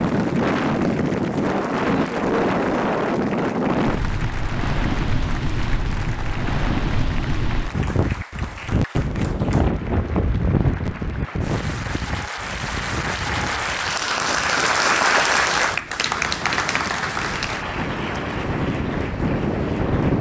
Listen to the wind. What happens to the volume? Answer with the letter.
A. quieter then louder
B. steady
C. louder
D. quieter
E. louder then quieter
A.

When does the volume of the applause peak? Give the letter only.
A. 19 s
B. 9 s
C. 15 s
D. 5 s
C.